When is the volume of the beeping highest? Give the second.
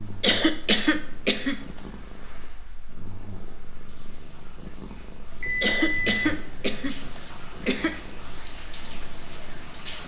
6 s.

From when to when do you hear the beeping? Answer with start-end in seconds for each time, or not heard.
5.4-7.1.